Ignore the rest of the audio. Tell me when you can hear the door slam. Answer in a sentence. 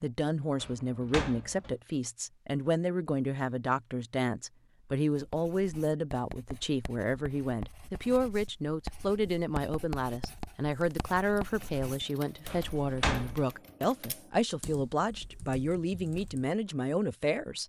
You can hear the door slam from 0.6 to 1.8 s and from 12.5 to 13.3 s.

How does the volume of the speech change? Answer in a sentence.
The volume of the speech stays about the same.